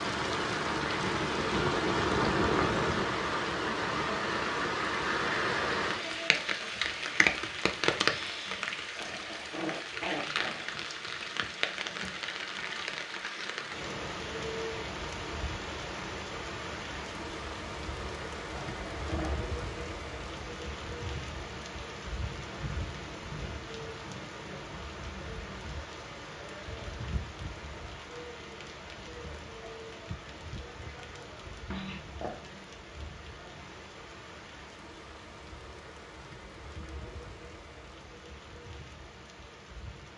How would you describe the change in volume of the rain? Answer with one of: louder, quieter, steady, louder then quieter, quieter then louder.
quieter.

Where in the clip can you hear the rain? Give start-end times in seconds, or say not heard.
0.0-40.1.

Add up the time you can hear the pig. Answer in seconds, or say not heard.
not heard.